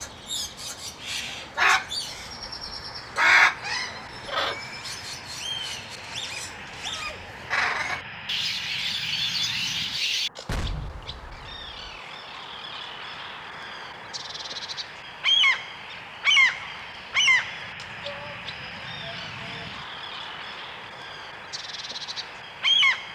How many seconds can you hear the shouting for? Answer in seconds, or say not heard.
2 s.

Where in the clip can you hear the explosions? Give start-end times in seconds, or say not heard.
10.4-11.8.